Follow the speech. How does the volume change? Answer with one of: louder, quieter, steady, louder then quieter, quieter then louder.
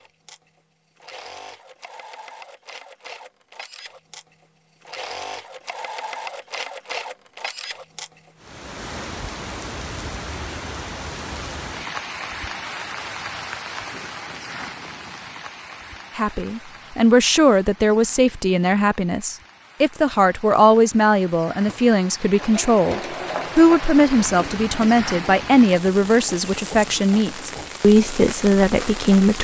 steady.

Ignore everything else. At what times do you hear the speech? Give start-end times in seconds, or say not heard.
16.1-29.3.